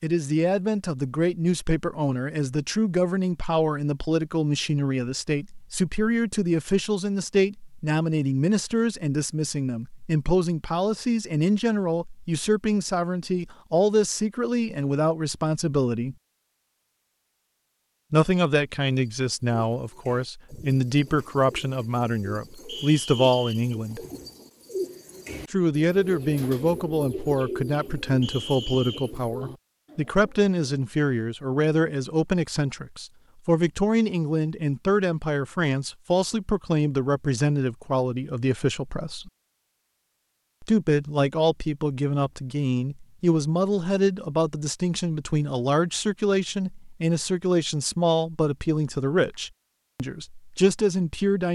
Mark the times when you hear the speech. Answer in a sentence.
You can hear the speech from 0.0 to 16.1 s, from 18.1 to 24.1 s, from 25.5 to 39.3 s and from 40.6 to 51.5 s.